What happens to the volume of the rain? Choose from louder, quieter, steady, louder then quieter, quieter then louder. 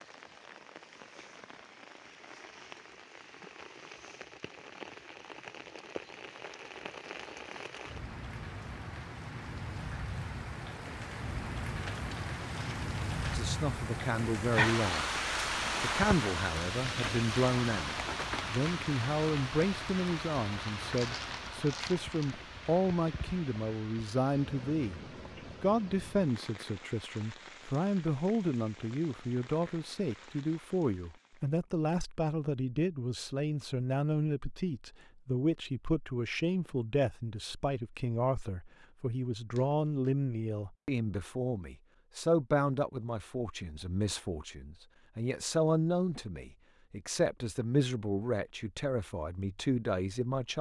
louder then quieter.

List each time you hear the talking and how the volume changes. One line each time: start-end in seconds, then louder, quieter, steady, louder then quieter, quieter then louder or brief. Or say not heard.
13.3-15.2 brief
15.8-25.0 steady
25.6-50.5 steady.